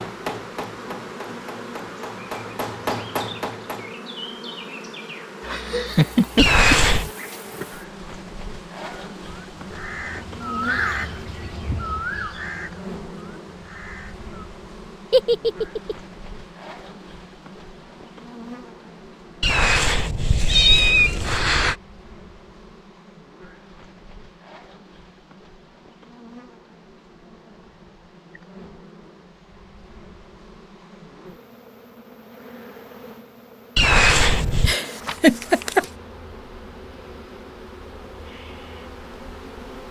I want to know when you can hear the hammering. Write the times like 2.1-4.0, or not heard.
0.0-4.0.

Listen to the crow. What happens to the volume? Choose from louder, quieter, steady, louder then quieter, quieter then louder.
louder then quieter.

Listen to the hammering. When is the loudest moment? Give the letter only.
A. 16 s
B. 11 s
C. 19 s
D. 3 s
D.